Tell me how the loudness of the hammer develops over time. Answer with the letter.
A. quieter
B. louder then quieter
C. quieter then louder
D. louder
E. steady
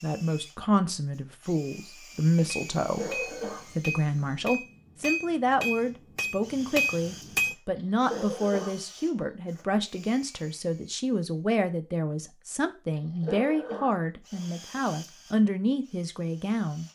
D.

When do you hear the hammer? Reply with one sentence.
You can hear the hammer from 2.3 to 7.5 s.